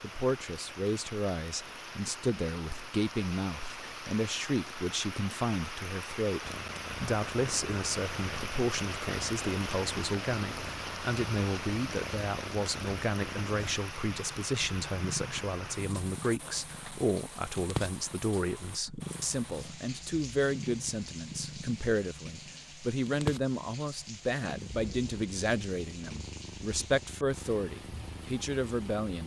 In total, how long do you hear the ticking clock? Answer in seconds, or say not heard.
not heard.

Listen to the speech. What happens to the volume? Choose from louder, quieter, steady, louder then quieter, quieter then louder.
steady.